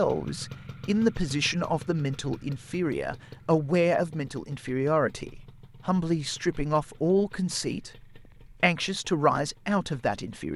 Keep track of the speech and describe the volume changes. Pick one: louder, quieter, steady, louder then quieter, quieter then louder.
steady.